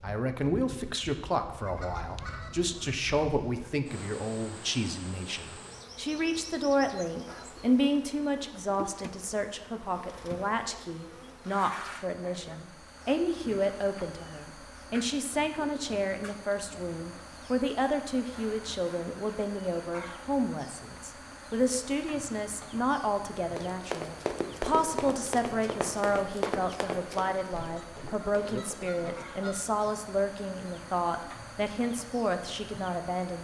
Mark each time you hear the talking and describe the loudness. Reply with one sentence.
The talking can be heard from 0.0 to 33.3 s, at a steady volume.